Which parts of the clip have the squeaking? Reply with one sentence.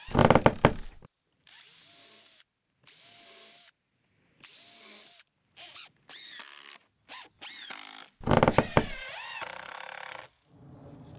You can hear the squeaking from 0.1 to 0.9 s and from 8.2 to 9.0 s.